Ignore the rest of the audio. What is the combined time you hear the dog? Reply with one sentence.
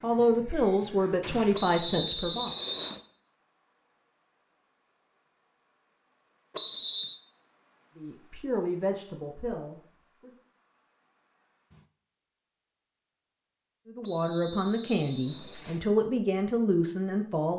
The dog can't be heard in this clip.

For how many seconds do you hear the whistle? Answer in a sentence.
The whistle can be heard for 4 seconds in total.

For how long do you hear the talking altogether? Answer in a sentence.
You can hear the talking for 9 seconds altogether.